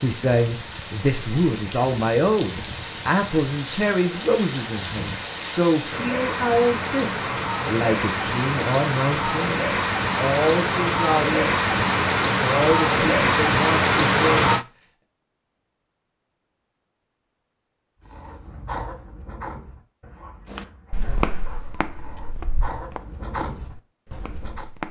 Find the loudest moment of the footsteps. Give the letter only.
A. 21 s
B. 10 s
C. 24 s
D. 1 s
A.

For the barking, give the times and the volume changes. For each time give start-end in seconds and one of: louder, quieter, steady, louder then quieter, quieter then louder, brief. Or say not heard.
18.1-24.7 quieter then louder.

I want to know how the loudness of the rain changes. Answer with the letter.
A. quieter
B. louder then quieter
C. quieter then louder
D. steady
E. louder
E.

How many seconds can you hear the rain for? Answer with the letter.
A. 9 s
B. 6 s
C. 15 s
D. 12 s
C.